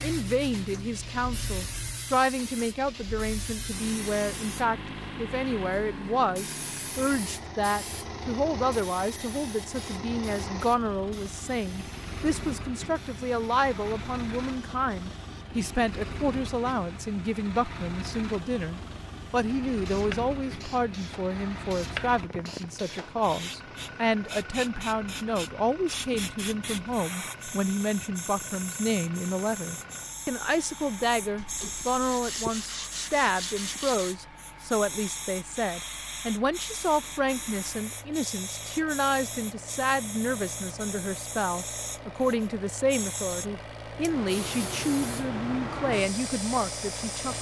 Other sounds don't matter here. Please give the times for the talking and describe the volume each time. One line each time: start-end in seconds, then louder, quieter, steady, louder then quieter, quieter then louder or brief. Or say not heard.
0.0-47.3 steady.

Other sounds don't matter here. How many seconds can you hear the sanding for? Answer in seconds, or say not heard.
3 s.